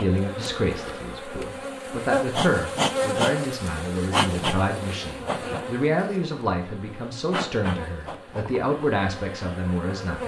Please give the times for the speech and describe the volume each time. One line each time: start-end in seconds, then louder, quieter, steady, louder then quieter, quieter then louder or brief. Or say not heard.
0.0-10.2 steady.